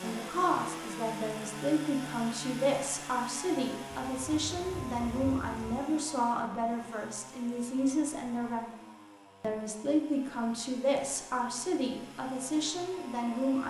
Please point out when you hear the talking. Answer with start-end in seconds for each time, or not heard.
0.0-8.7, 9.4-13.6.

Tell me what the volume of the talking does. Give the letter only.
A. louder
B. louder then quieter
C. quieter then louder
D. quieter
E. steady
E.